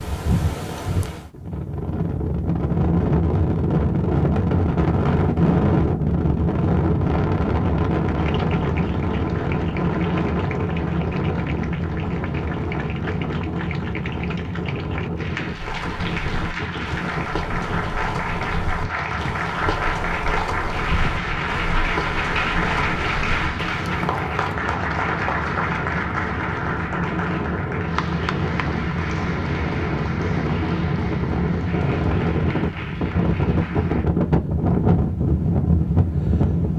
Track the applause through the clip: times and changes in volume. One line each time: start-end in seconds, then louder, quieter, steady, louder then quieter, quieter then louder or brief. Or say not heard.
8.2-34.0 louder then quieter.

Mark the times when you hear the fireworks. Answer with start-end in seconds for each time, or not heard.
not heard.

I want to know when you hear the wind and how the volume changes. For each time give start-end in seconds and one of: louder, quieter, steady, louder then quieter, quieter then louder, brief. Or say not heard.
0.0-36.7 quieter then louder.